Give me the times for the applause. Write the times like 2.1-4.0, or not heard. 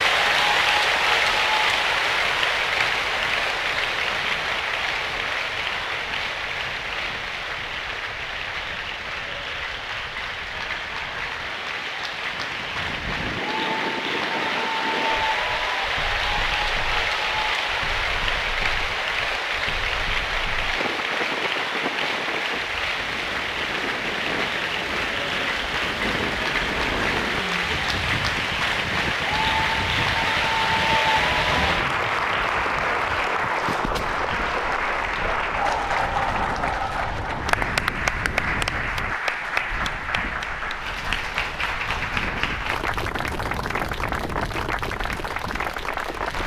0.0-46.4.